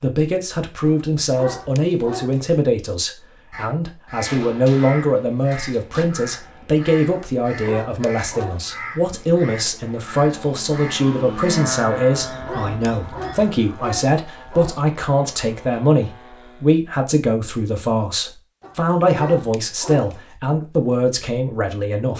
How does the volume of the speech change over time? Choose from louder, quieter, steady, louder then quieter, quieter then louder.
steady.